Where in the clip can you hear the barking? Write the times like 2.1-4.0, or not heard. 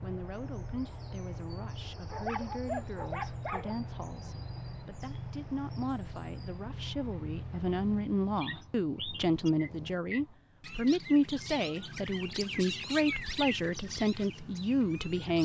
2.0-3.8.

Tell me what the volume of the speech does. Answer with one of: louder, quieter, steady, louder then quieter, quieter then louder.
louder.